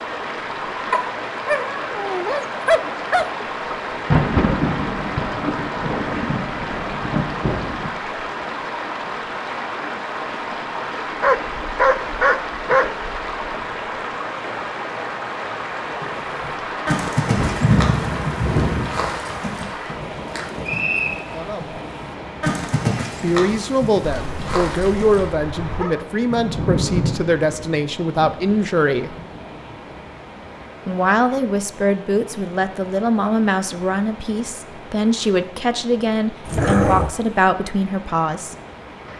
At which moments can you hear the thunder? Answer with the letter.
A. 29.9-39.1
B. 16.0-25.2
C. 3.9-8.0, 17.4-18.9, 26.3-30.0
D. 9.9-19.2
C.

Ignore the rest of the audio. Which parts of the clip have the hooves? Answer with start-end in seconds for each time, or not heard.
16.0-25.2.